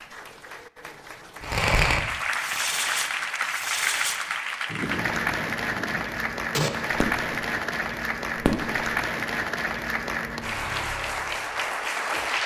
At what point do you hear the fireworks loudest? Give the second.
2 s.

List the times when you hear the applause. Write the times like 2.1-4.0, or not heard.
0.0-12.4.